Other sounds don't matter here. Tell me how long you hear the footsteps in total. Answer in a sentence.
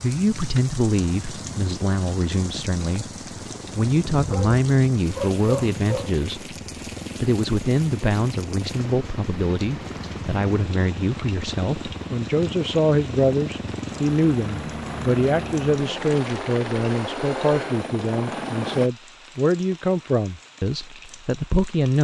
The footsteps can't be heard in this clip.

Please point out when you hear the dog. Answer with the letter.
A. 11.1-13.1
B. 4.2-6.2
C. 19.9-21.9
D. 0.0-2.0
B.